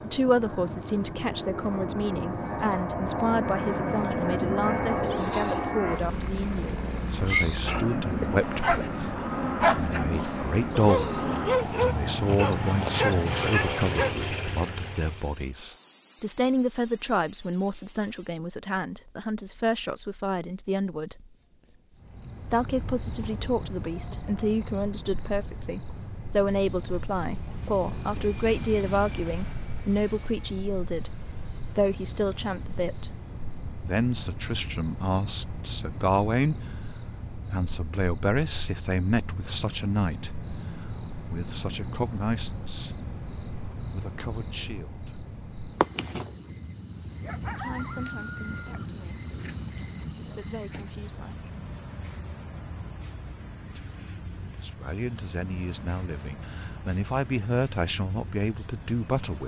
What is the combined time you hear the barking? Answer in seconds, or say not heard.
7 s.